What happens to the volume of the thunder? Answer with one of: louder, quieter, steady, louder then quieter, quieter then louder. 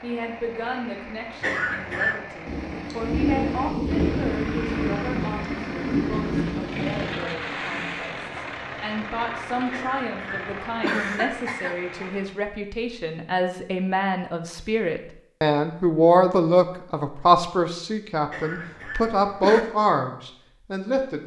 steady.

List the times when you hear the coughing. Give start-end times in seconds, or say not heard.
1.4-2.2, 9.7-11.8, 18.3-19.6.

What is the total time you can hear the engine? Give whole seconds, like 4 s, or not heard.
12 s.